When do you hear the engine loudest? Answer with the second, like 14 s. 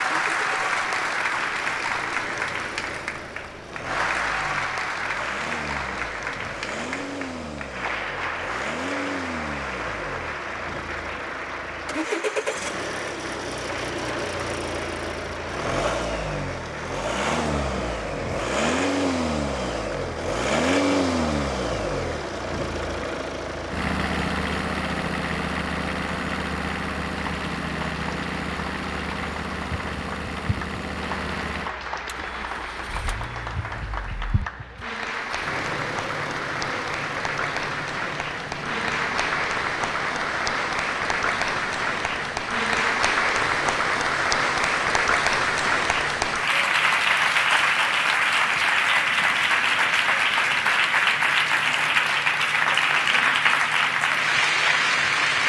21 s.